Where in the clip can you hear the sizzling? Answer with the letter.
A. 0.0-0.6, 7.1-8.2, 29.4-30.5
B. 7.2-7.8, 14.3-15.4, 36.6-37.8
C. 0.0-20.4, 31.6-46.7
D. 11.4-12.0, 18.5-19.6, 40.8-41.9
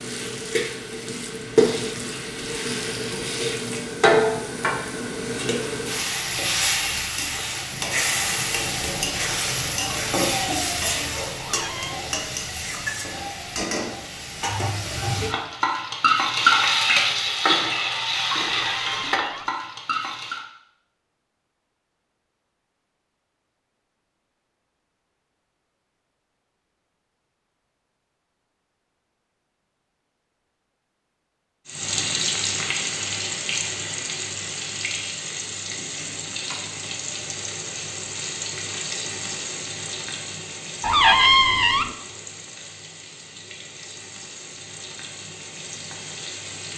C.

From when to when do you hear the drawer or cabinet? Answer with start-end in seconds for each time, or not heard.
11.4-12.0, 18.5-19.6, 40.8-41.9.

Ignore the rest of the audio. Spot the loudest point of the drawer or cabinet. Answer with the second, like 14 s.
41 s.